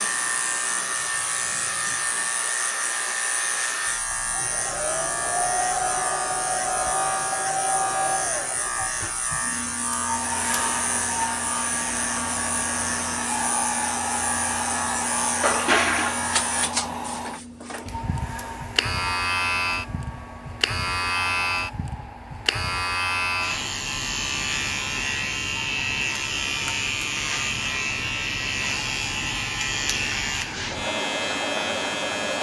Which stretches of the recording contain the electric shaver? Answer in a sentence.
You can hear the electric shaver from 0.0 to 32.3 s.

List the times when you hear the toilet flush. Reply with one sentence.
The toilet flush can be heard from 15.4 to 16.1 s.